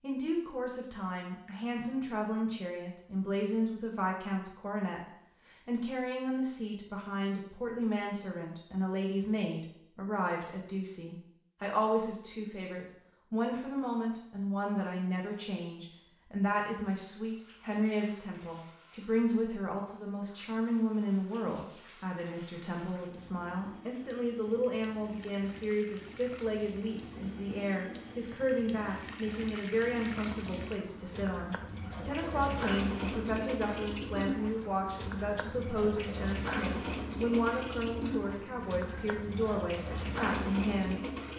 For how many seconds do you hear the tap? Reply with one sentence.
The tap can be heard for 24 seconds in total.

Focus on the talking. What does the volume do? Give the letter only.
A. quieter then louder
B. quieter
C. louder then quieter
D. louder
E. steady
E.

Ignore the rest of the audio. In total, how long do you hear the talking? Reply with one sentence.
The talking can be heard for 41 seconds in total.